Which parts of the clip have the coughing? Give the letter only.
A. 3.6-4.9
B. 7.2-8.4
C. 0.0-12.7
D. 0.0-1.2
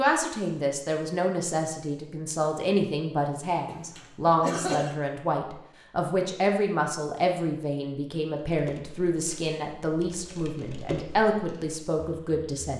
A.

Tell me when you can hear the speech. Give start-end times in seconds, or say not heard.
0.0-12.7.